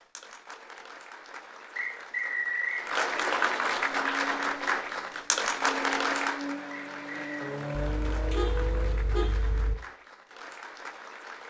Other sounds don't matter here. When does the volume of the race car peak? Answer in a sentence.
The volume of the race car peaks at 8 seconds.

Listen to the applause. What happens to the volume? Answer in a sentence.
The volume of the applause goes up, then down.